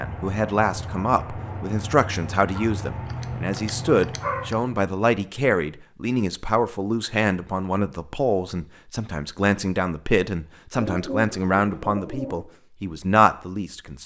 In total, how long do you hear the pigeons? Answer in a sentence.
The pigeons can be heard for 2 seconds in total.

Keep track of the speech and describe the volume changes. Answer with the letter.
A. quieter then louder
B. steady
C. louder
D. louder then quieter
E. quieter
B.